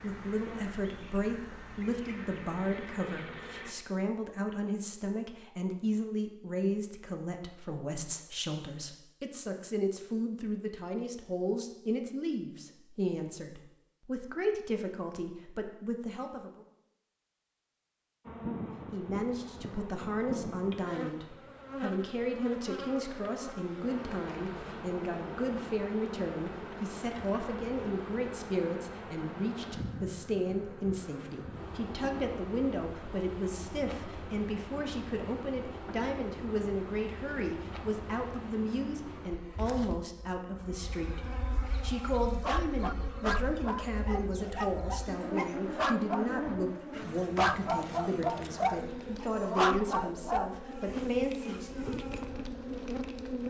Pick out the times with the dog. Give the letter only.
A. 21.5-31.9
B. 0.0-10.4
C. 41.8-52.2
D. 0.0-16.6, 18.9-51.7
C.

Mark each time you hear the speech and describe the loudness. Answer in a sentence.
You can hear the speech from 0.0 to 16.6 s, at a steady volume; and from 18.9 to 51.7 s, at a steady volume.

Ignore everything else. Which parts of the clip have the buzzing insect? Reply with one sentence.
You can hear the buzzing insect from 0.0 to 3.8 s and from 18.2 to 53.4 s.